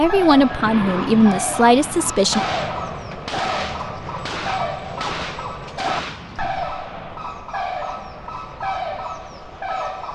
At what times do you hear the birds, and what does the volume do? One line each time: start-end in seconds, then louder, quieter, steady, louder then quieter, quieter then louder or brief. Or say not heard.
0.0-10.1 steady.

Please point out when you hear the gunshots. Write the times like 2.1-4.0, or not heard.
2.1-6.8.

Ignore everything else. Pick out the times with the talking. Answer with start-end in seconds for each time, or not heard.
0.0-2.4.